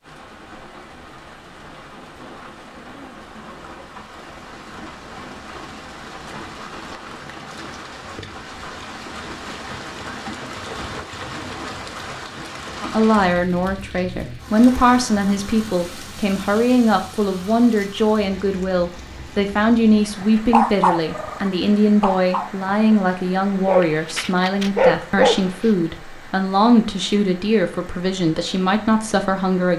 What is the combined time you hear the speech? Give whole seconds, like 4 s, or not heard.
17 s.